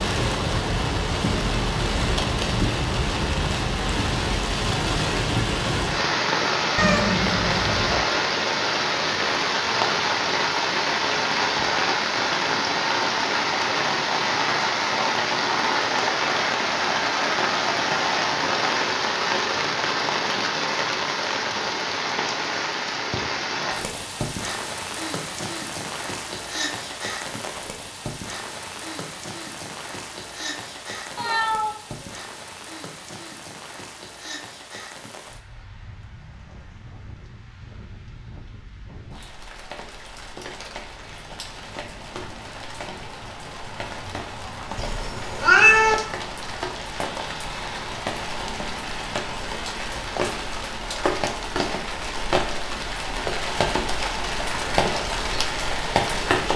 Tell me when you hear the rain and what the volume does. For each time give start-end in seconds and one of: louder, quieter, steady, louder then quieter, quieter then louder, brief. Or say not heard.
0.0-56.5 quieter then louder.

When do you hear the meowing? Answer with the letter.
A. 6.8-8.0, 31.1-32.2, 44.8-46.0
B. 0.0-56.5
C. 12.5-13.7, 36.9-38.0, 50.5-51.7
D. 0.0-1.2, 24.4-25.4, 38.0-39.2
A.